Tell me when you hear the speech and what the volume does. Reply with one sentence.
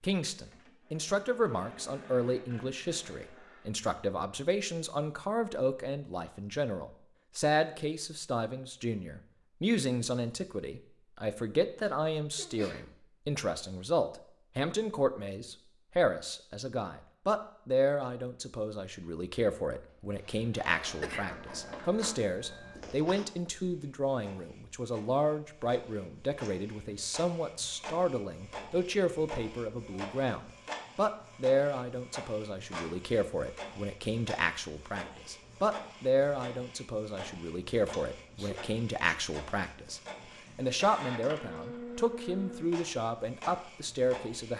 The speech can be heard from 0.0 to 44.5 s, at a steady volume.